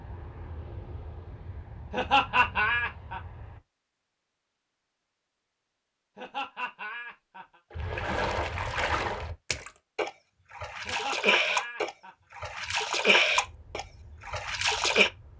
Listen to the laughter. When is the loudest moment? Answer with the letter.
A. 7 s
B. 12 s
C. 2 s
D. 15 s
C.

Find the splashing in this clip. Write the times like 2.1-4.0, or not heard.
7.7-15.1.